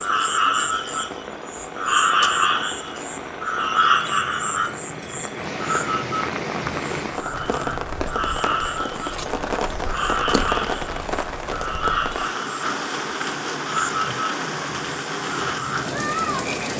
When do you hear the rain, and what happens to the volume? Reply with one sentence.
The rain can be heard from 0.0 to 16.7 s, getting louder.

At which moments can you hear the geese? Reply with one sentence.
The geese can't be heard in this clip.